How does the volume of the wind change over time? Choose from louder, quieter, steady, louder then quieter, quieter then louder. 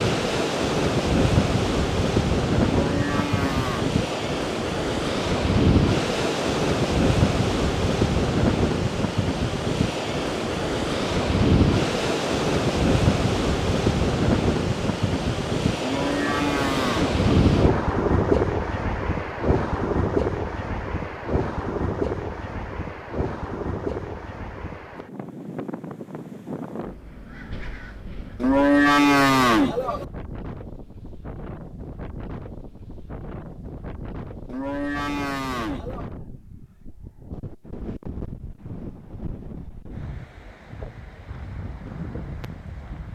quieter.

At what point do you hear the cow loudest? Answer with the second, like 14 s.
29 s.